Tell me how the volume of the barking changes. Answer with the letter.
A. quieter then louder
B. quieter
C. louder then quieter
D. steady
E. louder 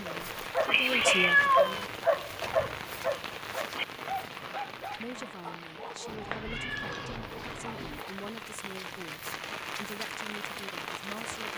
B.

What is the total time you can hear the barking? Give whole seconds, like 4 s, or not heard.
8 s.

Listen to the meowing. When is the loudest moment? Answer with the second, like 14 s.
1 s.